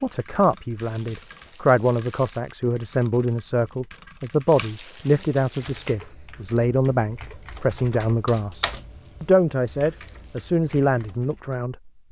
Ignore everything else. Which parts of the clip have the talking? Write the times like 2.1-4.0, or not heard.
0.0-11.9.